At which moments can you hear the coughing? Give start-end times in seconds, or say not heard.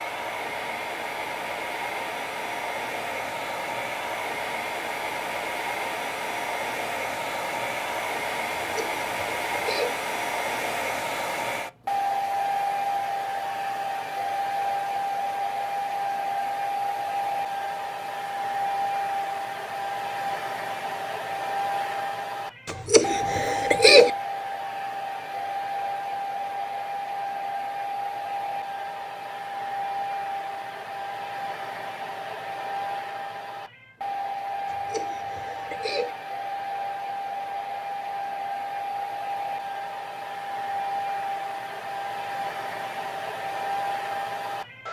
8.6-9.9, 22.6-24.1, 34.6-36.1.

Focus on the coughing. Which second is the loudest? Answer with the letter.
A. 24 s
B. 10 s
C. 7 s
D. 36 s
A.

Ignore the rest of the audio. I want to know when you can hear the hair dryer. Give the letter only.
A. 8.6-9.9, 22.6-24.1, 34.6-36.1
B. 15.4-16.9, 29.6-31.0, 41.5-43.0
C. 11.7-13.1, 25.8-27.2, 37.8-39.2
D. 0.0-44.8
D.